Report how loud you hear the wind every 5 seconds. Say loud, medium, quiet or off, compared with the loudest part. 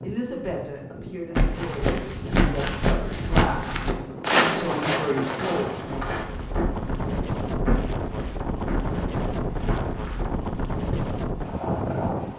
medium, loud, loud.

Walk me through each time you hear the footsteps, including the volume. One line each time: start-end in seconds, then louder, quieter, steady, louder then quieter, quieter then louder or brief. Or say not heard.
1.4-11.2 quieter.